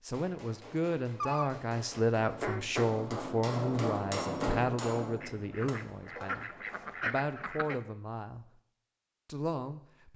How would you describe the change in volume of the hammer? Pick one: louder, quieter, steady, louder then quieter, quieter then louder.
louder then quieter.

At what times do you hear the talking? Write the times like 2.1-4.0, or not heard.
0.0-8.5, 9.2-10.1.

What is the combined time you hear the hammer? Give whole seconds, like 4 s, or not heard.
7 s.